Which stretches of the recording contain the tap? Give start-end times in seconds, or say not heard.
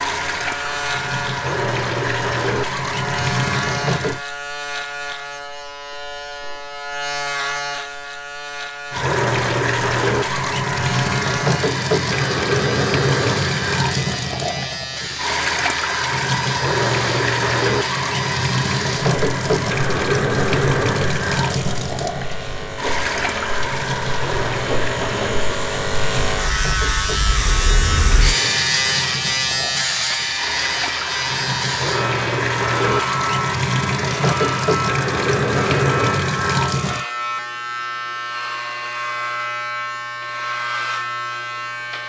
0.0-4.2, 8.9-37.0.